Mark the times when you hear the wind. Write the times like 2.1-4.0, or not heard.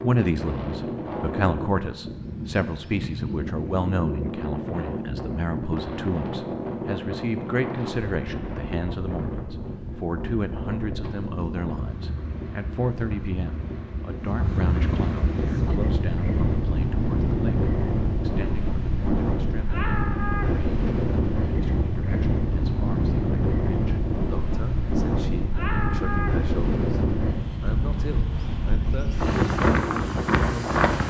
0.0-31.0.